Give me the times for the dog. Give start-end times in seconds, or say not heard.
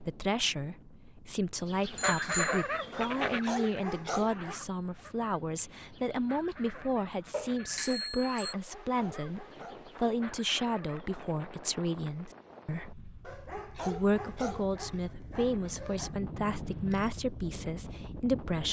2.9-4.6, 8.5-9.9, 13.2-16.1.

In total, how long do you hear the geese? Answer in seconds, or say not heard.
10 s.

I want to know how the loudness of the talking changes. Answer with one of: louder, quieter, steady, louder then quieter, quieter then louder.
steady.